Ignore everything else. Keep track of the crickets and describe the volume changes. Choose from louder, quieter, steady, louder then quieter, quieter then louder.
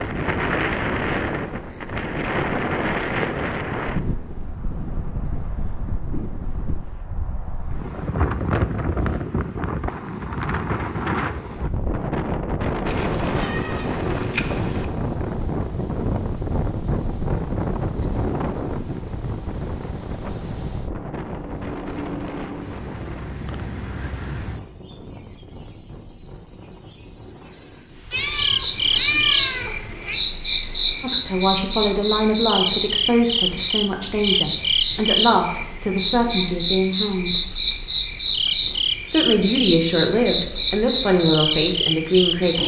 louder.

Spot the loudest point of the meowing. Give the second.
29 s.